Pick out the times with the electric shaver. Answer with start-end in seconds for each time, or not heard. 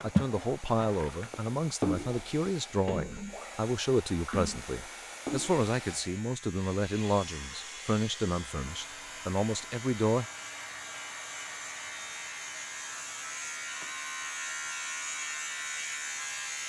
0.0-16.6.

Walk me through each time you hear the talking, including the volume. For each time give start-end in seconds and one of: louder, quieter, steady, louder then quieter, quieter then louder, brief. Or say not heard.
0.0-10.2 steady.